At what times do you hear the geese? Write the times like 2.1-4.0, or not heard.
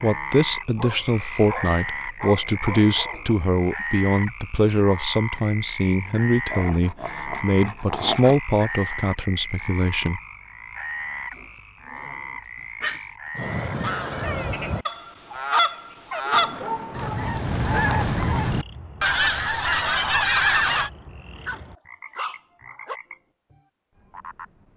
13.3-20.9.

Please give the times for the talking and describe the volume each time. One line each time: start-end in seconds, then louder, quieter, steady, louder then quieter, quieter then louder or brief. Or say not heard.
0.0-10.2 steady.